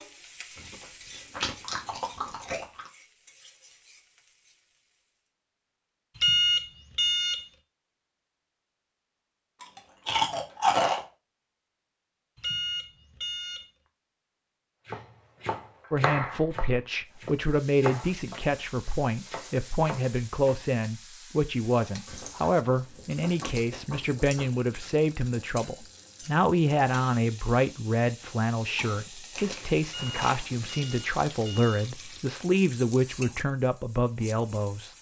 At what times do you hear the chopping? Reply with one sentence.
The chopping can be heard from 14.8 to 20.6 s.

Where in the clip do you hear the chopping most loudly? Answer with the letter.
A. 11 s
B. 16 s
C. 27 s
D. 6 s
B.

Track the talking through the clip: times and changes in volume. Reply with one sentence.
The talking can be heard from 15.9 to 34.9 s, at a steady volume.